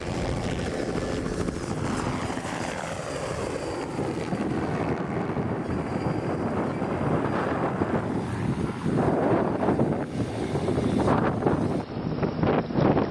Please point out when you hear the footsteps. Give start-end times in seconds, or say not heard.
not heard.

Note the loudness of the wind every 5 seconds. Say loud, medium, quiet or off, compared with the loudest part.
medium, loud, loud.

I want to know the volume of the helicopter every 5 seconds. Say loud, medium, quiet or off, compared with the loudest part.
loud, medium, medium.